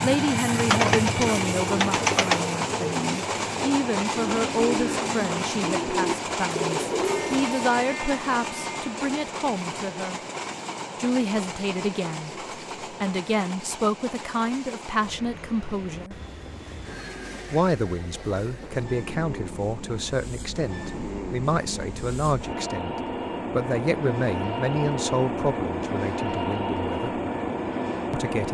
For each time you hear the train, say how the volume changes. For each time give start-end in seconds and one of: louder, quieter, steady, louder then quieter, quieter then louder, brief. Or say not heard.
0.0-28.4 quieter then louder.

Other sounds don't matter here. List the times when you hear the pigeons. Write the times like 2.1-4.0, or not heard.
0.6-7.5.